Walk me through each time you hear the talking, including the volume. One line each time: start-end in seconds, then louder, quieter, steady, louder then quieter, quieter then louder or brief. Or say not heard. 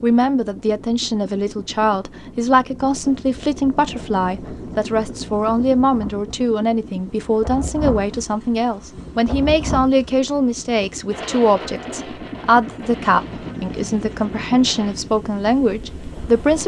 0.0-16.6 steady.